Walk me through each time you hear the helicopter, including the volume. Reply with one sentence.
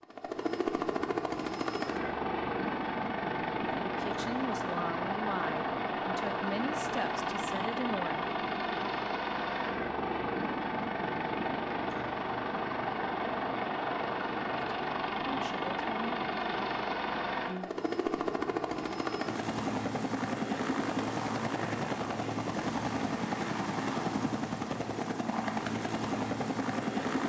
The helicopter can be heard from 0.0 to 27.2 s, at a steady volume.